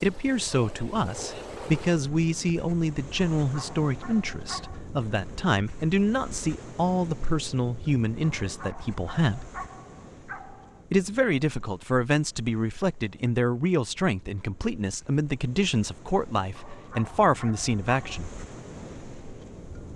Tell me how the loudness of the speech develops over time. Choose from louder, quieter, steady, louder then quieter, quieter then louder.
steady.